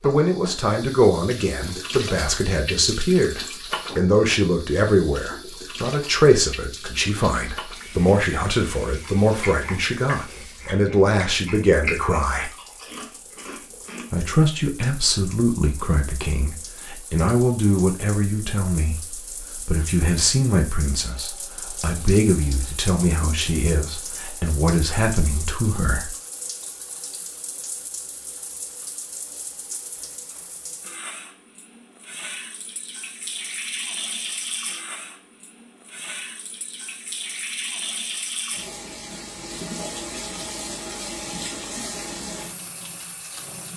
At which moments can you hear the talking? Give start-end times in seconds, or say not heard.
0.0-12.5, 14.1-19.1, 19.6-26.1.